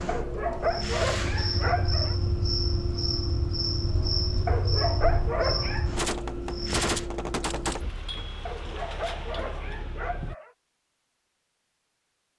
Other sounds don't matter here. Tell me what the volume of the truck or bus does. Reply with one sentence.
The loudness of the truck or bus stays about the same.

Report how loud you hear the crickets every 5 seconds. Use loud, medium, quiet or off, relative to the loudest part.
loud, loud, off.